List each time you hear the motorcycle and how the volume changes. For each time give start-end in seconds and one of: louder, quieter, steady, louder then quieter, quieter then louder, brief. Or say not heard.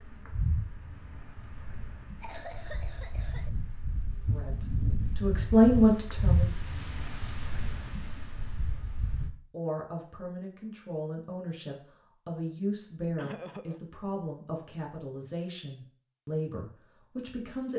not heard.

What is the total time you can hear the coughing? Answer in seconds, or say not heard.
2 s.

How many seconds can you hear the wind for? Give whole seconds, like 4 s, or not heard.
9 s.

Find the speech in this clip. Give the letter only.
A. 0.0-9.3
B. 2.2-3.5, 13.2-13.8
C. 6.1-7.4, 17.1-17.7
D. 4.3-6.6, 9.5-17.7
D.